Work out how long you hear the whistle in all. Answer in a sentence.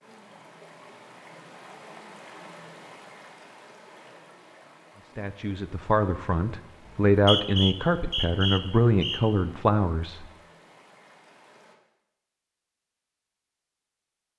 The whistle can be heard for 2 seconds in total.